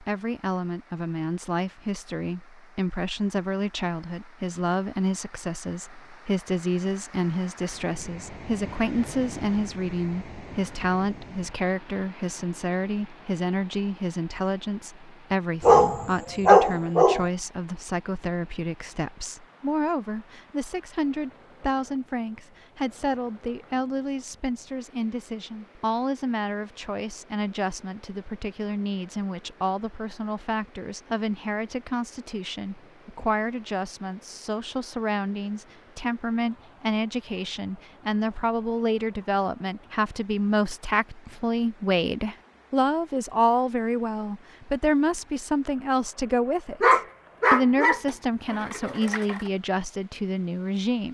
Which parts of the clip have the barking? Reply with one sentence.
You can hear the barking from 15.6 to 17.3 s and from 46.8 to 49.5 s.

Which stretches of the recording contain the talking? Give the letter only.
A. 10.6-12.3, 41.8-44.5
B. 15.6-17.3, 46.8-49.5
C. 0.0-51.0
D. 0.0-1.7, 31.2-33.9
C.